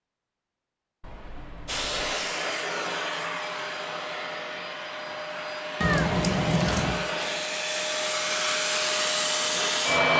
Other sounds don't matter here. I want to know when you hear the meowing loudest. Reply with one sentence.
The loudest moment of the meowing is at 6 seconds.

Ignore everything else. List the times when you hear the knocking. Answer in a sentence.
The knocking can't be heard in this clip.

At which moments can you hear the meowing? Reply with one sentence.
The meowing can be heard from 1.0 to 2.1 s and from 5.8 to 7.0 s.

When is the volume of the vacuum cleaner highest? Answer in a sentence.
The loudest moment of the vacuum cleaner is at 10 seconds.